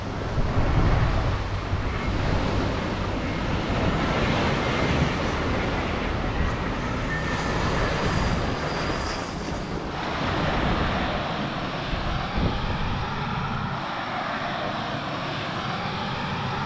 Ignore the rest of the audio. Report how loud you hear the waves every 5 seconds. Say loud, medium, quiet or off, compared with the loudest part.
loud, loud, loud, off.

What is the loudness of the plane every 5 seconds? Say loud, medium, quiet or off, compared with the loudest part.
medium, loud, loud, loud.